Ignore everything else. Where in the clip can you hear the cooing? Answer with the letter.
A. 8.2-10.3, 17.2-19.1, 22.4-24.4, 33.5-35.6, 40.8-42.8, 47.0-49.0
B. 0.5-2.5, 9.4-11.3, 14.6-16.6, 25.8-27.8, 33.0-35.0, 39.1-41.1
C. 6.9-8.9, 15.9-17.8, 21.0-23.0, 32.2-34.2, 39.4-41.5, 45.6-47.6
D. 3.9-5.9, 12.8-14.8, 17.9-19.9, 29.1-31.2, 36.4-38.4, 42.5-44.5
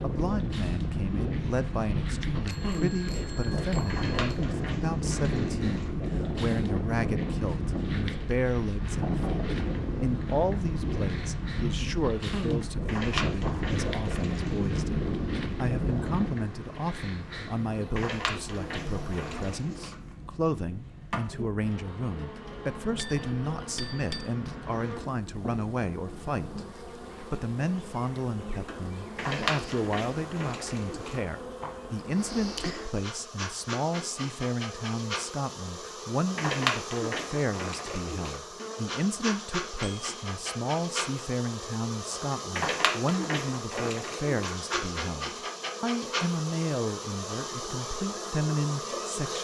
D.